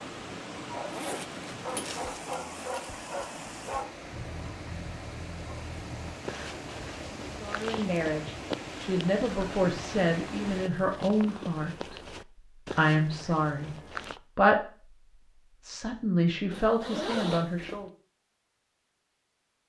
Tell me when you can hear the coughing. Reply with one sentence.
The coughing can't be heard in this clip.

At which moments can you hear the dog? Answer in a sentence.
The dog can be heard from 0.7 to 6.2 s.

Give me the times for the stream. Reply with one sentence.
The stream can be heard from 0.0 to 10.7 s.